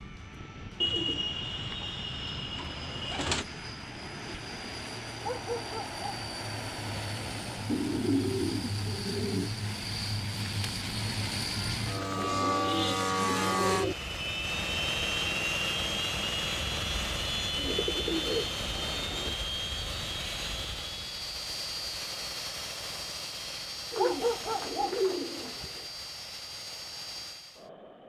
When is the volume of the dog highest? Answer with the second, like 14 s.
24 s.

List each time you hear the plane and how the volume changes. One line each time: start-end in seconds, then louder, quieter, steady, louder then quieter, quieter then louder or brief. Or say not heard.
0.0-28.0 louder then quieter.